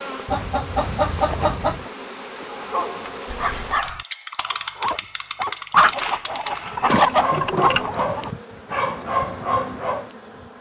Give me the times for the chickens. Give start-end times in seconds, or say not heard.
0.2-1.9, 5.7-8.3.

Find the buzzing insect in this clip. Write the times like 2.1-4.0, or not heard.
0.0-10.5.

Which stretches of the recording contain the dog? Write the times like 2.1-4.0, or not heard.
2.5-10.1.